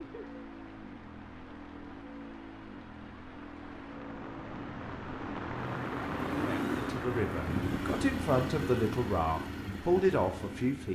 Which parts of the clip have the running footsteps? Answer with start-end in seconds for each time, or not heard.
not heard.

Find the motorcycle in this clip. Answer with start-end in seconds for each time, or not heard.
0.0-10.9.